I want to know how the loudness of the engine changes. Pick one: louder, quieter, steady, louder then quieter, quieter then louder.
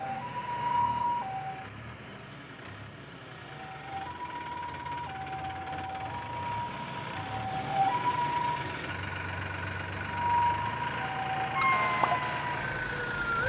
louder.